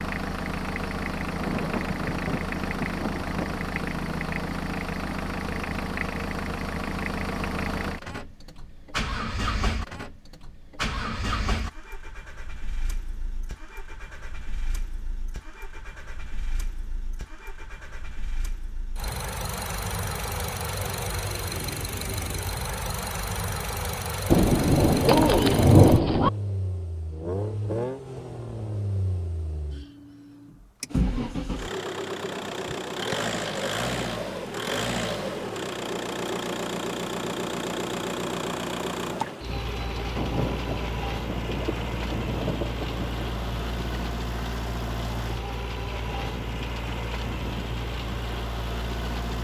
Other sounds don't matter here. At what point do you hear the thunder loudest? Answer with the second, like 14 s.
26 s.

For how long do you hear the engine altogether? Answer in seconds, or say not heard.
49 s.